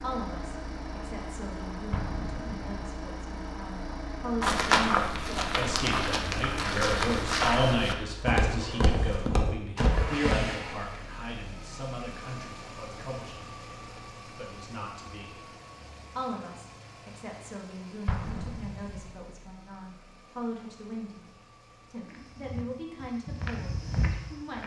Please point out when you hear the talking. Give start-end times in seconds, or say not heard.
0.0-15.4, 16.1-21.3, 21.9-24.6.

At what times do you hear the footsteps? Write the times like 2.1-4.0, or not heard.
4.4-10.4, 22.1-24.6.